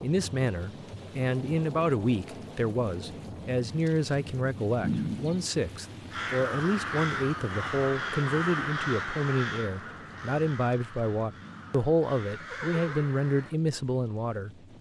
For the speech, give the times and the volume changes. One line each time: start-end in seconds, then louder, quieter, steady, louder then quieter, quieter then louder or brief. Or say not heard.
0.0-14.6 steady.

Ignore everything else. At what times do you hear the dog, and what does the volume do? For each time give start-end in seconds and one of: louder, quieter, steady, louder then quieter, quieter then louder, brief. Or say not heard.
not heard.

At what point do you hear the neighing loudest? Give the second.
5 s.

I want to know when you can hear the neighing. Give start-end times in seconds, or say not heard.
4.8-5.4, 11.4-13.2.